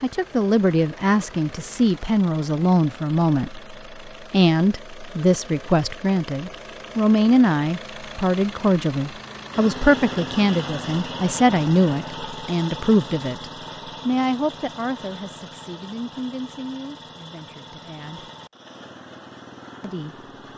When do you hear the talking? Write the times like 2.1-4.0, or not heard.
0.0-18.3, 19.8-20.2.